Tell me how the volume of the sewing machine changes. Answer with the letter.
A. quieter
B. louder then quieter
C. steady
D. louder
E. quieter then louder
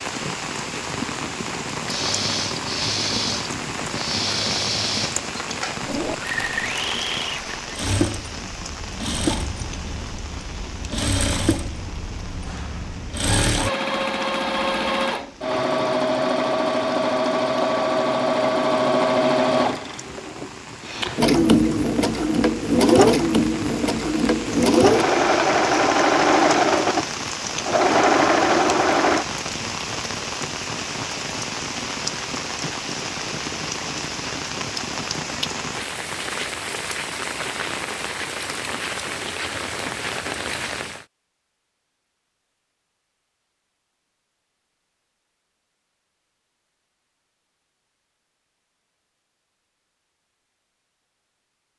D.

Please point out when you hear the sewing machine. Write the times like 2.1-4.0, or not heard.
1.9-29.2.